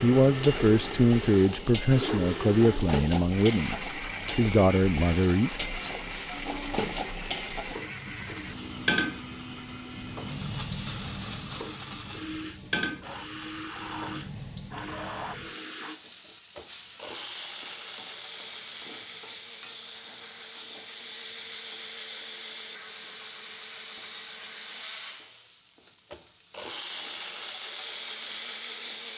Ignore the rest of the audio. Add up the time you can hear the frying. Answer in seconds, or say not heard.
29 s.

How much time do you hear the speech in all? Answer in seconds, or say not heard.
6 s.